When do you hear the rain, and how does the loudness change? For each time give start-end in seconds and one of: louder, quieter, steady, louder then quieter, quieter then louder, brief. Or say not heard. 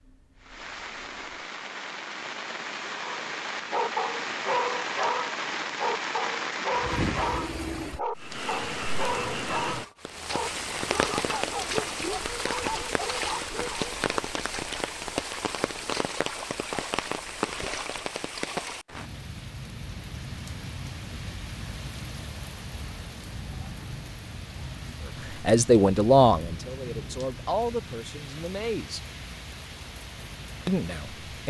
0.0-31.4 quieter.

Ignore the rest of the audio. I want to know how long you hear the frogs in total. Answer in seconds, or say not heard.
not heard.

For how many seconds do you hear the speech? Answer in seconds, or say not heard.
4 s.